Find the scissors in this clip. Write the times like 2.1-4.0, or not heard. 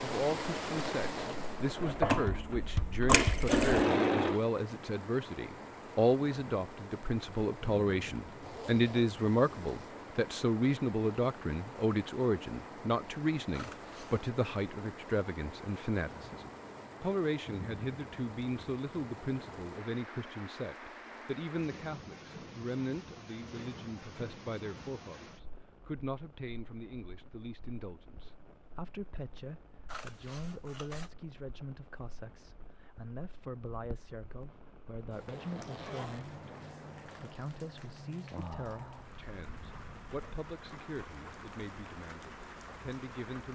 13.5-14.2, 29.9-31.1.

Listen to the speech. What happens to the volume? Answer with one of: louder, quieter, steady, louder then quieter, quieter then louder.
quieter.